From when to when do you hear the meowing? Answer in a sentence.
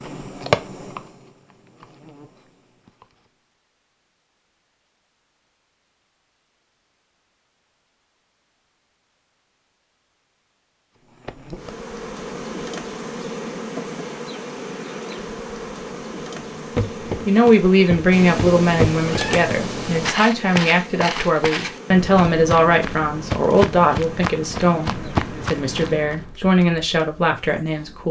The meowing can be heard from 18.1 to 20.1 s.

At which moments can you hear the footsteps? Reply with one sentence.
The footsteps can be heard from 16.8 to 26.4 s.